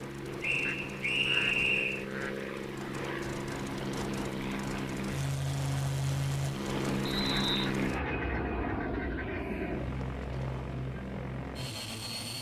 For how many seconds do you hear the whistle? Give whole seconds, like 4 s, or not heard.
2 s.